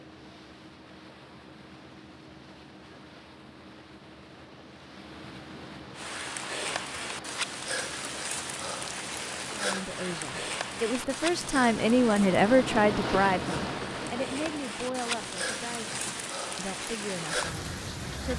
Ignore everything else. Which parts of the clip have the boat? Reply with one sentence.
You can hear the boat from 0.0 to 18.3 s.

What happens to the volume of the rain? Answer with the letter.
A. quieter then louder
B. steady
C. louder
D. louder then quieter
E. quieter
B.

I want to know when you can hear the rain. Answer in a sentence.
You can hear the rain from 6.0 to 18.3 s.